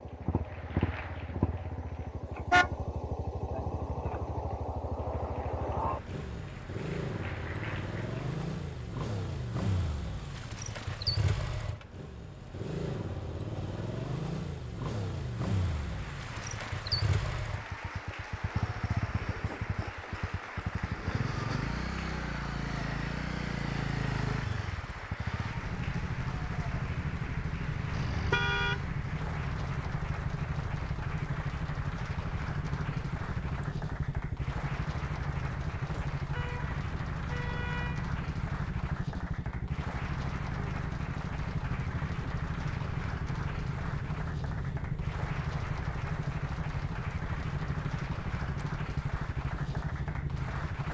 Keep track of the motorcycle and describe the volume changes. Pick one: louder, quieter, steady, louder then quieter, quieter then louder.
steady.